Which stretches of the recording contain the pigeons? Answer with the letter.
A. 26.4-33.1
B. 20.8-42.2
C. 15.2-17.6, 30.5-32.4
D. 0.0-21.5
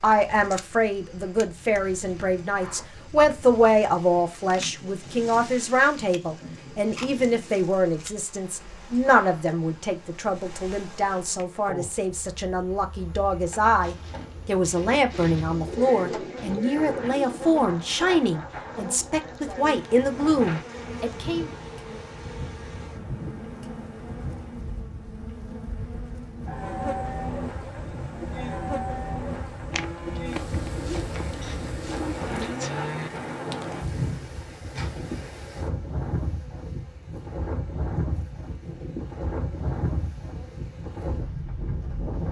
C.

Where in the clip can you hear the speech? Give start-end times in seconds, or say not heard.
0.0-21.5.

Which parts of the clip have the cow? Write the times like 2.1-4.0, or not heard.
26.4-33.1.